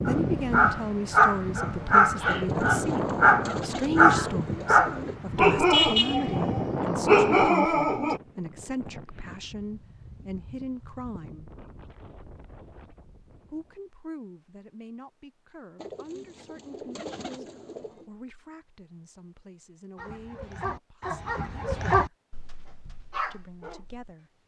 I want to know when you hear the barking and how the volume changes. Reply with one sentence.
The barking can be heard from 0.1 to 8.2 s, at a steady volume; and from 19.9 to 24.4 s, getting louder then quieter.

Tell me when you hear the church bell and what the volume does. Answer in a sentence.
The church bell can't be heard in this clip.